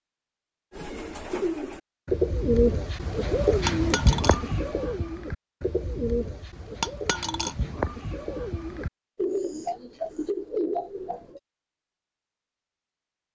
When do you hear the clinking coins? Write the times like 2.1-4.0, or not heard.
3.6-4.4, 6.8-7.5.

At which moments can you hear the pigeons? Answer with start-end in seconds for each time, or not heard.
0.7-11.4.